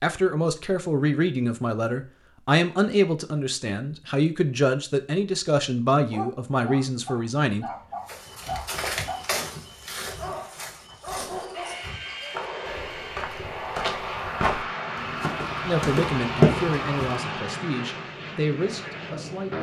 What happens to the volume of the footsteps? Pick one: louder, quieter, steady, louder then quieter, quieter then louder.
quieter then louder.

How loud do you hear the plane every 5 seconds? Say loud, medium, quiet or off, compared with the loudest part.
off, off, loud, loud.